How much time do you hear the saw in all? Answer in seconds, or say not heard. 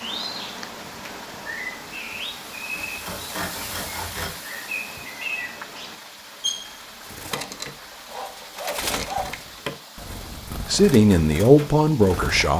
4 s.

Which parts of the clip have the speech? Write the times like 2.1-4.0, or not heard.
10.7-12.5.